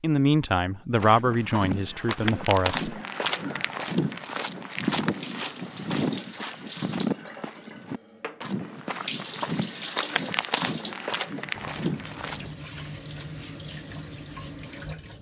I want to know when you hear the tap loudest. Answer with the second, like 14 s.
10 s.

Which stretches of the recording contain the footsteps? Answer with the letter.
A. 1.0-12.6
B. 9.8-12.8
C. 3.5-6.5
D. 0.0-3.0
A.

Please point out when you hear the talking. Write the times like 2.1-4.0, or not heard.
0.0-3.0.